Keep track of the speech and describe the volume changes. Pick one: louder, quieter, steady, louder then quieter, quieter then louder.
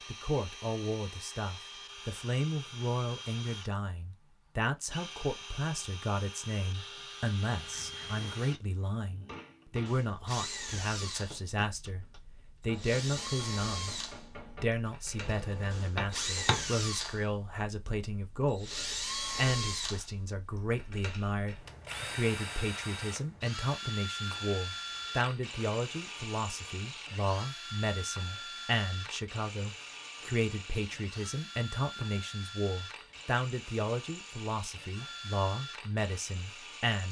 steady.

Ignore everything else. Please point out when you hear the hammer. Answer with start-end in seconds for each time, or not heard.
7.5-16.6.